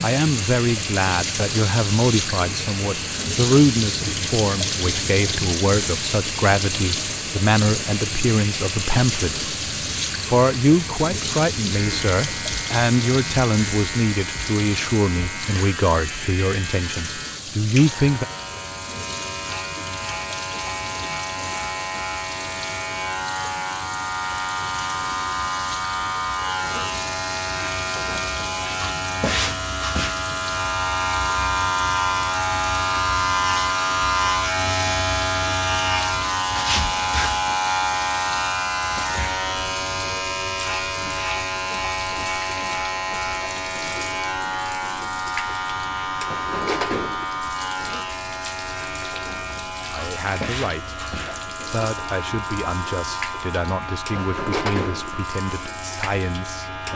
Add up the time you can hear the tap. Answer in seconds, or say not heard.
57 s.